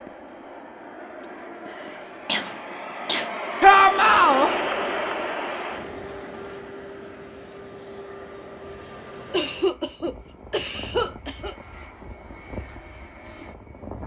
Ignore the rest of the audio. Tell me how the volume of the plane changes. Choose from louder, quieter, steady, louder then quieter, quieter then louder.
louder then quieter.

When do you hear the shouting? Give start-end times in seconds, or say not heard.
3.6-4.5.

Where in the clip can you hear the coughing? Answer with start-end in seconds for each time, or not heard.
1.2-3.3, 9.3-11.6.